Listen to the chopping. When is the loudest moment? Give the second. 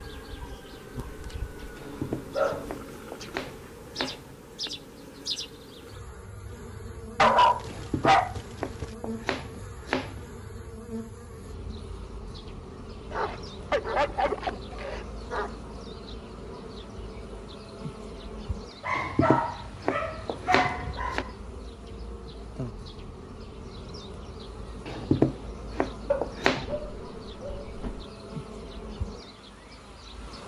25 s.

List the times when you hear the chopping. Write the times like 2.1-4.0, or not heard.
1.8-4.7, 7.7-10.3, 18.9-21.2, 24.9-26.8.